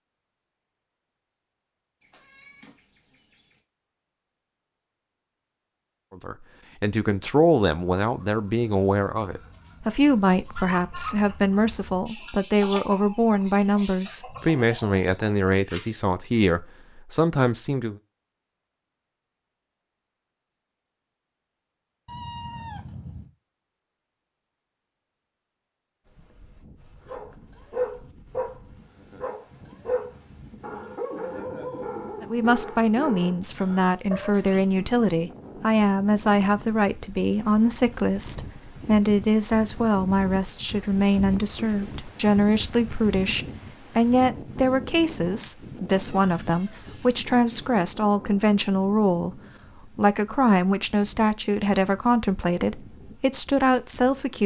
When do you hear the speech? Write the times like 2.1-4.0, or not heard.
6.1-18.0, 32.2-54.4.